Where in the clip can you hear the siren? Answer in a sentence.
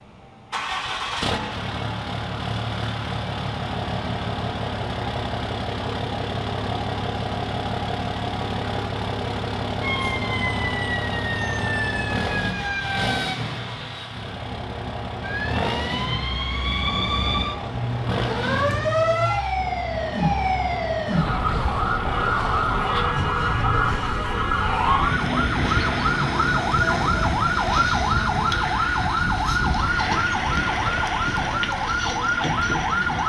You can hear the siren from 9.8 to 13.3 s and from 15.2 to 33.2 s.